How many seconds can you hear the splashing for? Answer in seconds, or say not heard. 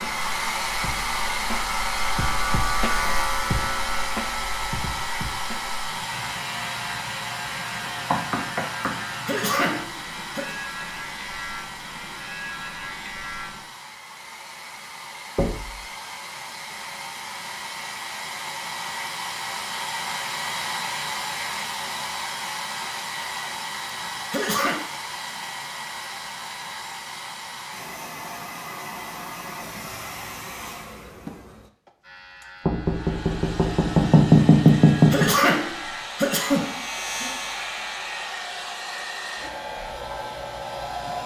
not heard.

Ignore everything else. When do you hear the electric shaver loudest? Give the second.
3 s.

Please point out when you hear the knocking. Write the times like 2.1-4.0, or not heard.
7.8-9.0, 15.3-15.8, 32.6-35.3.